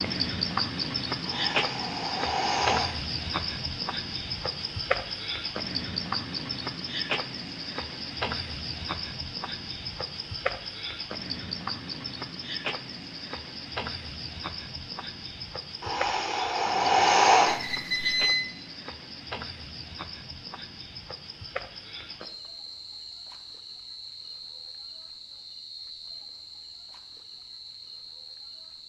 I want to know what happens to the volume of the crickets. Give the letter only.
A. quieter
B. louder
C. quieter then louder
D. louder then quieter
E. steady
A.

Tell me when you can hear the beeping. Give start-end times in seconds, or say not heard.
17.4-18.4.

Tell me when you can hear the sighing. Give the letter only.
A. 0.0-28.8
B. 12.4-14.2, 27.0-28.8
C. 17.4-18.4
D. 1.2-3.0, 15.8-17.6
D.